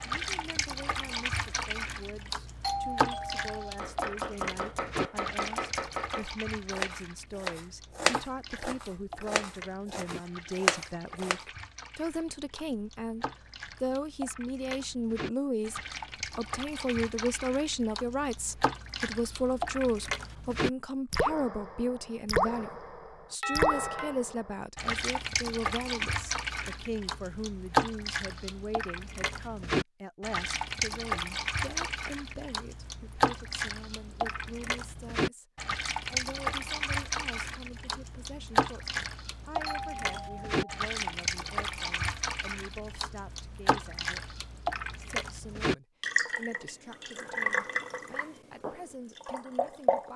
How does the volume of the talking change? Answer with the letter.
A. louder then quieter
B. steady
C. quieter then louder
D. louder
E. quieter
A.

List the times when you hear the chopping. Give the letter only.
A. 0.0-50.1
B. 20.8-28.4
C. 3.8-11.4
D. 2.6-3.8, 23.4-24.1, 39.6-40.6
C.